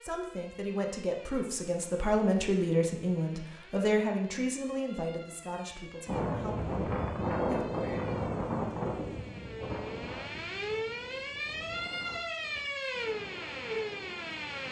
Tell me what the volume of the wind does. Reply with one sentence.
The volume of the wind goes down.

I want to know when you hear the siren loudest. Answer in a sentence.
The loudest moment of the siren is at 13 seconds.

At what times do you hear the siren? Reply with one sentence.
The siren can be heard from 0.0 to 14.6 s.